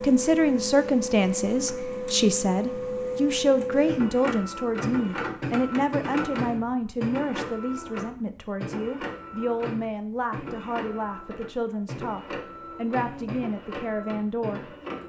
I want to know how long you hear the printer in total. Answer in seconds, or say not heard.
15 s.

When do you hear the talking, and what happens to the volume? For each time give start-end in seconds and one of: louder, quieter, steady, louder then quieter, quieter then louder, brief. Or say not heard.
0.0-14.8 quieter.